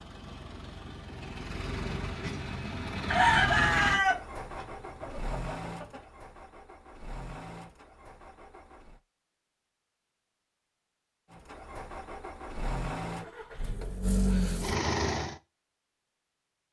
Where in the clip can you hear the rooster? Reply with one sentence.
The rooster can be heard from 3.1 to 6.0 s.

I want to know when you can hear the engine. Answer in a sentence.
You can hear the engine from 0.0 to 9.0 s and from 11.3 to 15.3 s.